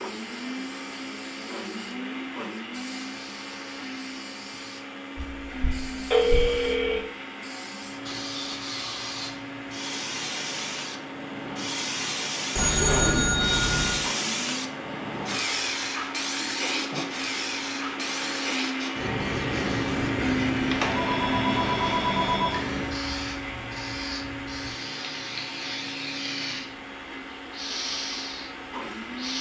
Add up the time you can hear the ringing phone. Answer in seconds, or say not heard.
5 s.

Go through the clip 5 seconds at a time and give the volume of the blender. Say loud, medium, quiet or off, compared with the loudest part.
medium, medium, medium, loud, loud, medium.